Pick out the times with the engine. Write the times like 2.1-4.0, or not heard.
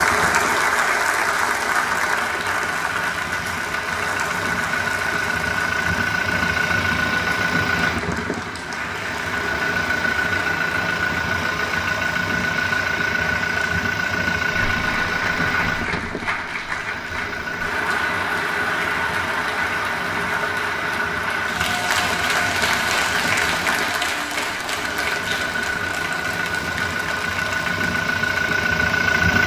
0.0-29.4.